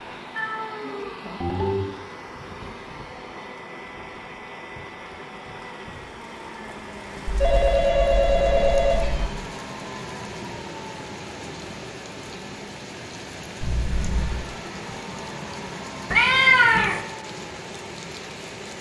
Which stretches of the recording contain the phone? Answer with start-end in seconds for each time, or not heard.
1.4-1.9, 7.4-9.1, 13.6-14.4.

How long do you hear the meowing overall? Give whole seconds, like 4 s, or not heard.
4 s.